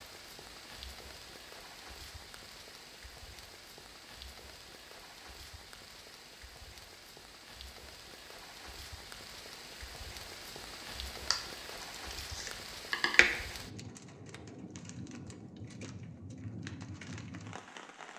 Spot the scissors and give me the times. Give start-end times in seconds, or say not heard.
11.3-13.2.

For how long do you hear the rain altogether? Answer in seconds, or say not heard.
18 s.